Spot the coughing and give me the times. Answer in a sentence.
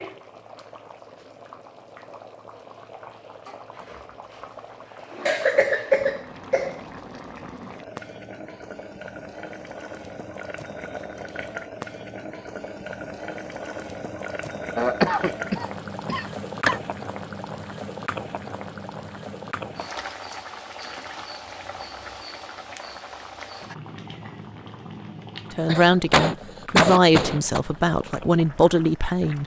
The coughing can be heard from 5.2 to 6.8 s, from 14.8 to 16.8 s and from 25.6 to 27.6 s.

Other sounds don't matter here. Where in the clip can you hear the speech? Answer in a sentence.
The speech can be heard from 25.5 to 29.4 s.